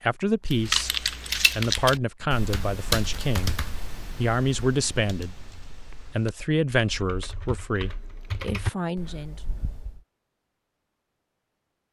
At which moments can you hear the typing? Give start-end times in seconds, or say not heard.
0.5-10.0.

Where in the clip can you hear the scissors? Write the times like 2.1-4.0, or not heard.
0.7-1.8.